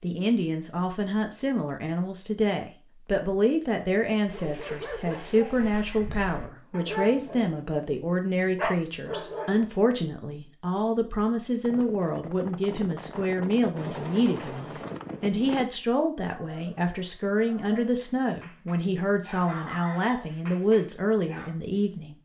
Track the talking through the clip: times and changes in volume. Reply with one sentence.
The talking can be heard from 0.0 to 22.1 s, at a steady volume.